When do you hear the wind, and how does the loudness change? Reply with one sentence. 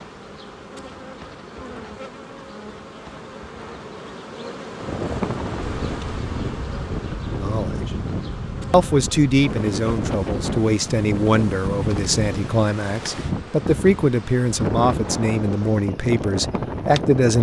The wind can be heard from 0.0 to 17.3 s, getting louder.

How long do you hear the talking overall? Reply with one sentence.
You can hear the talking for 9 seconds altogether.